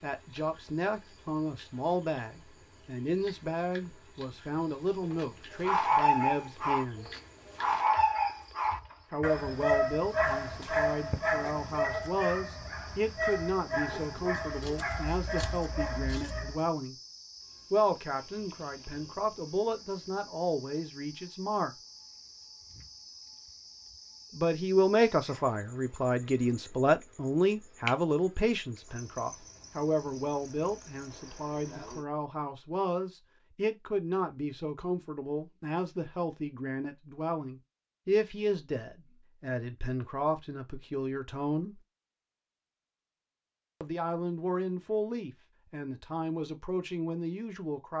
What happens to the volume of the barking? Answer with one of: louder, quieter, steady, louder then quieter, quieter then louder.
quieter.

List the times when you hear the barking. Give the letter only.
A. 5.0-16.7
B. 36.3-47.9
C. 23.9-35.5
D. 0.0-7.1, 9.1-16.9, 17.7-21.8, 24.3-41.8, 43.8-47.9
A.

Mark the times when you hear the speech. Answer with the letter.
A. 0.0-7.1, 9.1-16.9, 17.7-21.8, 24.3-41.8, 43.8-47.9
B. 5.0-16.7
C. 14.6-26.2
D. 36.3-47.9
A.